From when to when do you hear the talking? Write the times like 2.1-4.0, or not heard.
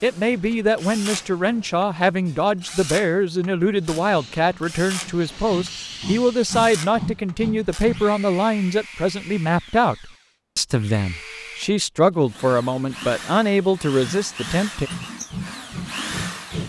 0.0-14.9.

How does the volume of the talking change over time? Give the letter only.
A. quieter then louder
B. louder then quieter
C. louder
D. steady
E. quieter
D.